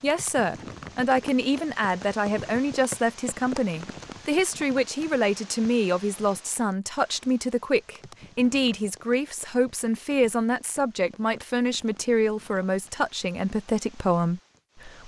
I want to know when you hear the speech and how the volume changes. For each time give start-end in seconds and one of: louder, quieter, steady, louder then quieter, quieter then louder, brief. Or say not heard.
0.0-15.0 steady.